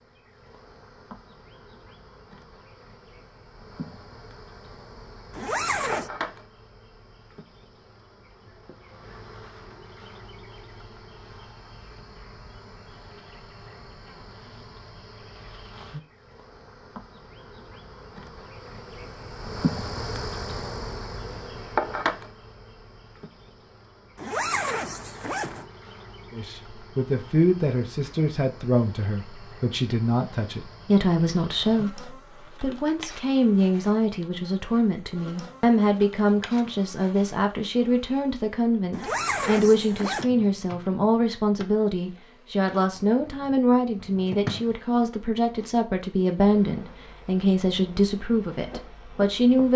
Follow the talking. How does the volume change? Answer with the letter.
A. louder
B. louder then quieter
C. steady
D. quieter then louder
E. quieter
C.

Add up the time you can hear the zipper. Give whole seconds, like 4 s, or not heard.
4 s.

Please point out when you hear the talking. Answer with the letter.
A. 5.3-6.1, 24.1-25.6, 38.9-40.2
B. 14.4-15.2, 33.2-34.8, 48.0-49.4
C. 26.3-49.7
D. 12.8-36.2
C.